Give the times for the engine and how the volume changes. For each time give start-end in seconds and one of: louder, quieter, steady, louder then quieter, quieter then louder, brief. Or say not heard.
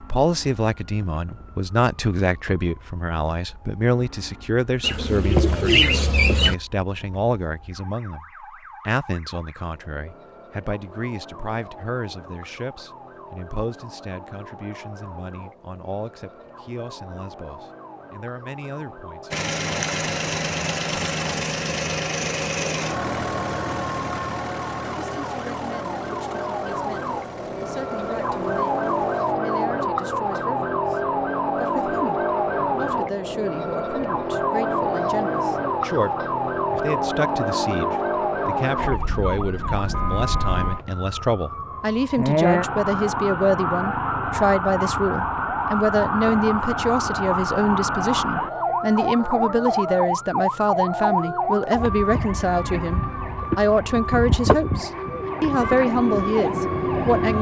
19.3-29.4 quieter.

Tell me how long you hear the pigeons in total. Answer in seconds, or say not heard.
2 s.